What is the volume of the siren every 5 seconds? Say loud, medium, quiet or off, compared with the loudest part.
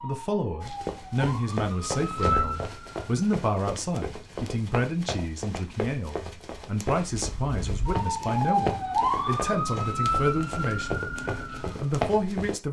medium, loud, loud.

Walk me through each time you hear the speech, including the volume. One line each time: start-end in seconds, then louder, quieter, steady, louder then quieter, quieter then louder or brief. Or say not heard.
0.0-11.1 steady
11.8-12.6 brief.